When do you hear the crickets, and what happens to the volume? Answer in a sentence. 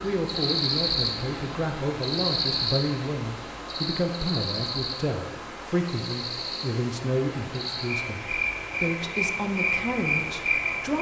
The crickets can be heard from 0.0 to 10.9 s, getting quieter then louder.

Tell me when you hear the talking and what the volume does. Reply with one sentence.
You can hear the talking from 0.0 to 10.9 s, at a steady volume.